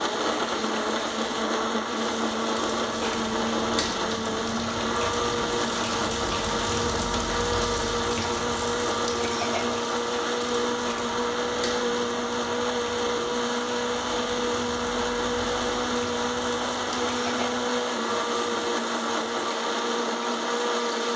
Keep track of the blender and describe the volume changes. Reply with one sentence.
The loudness of the blender stays about the same.